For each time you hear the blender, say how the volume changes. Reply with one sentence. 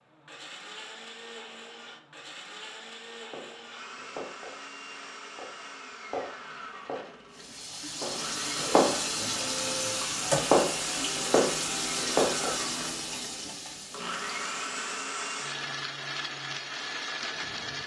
The blender can be heard from 0.0 to 17.8 s, getting louder.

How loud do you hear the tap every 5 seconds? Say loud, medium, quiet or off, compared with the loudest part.
off, loud, loud, off.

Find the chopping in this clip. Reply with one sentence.
You can hear the chopping from 3.3 to 4.6 s and from 5.3 to 12.6 s.